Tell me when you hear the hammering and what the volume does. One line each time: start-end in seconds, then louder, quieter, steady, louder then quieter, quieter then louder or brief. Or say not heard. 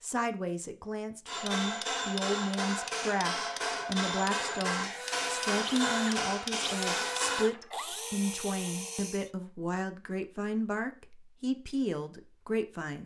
1.2-7.5 steady.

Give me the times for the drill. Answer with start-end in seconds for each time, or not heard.
4.9-9.3.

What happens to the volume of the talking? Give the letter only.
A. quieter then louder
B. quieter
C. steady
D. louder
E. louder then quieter
C.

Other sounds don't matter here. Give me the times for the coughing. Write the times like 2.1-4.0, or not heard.
not heard.